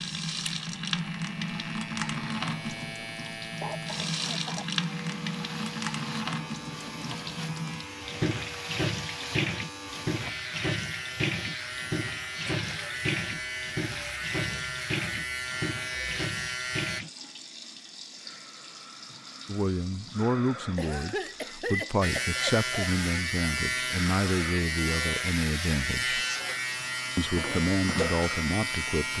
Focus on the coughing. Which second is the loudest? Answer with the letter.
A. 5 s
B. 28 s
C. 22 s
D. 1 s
C.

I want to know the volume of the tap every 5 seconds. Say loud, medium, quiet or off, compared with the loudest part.
loud, loud, loud, medium, medium, medium.